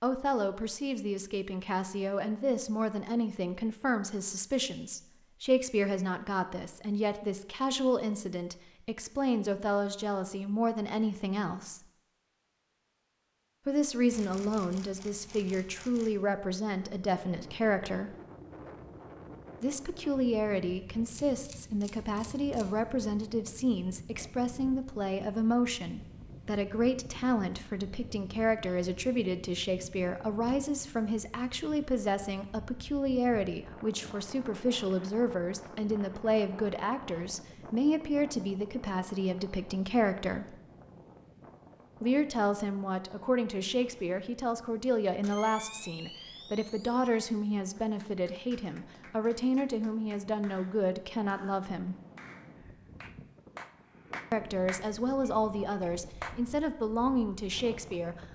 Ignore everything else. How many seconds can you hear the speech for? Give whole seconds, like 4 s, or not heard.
51 s.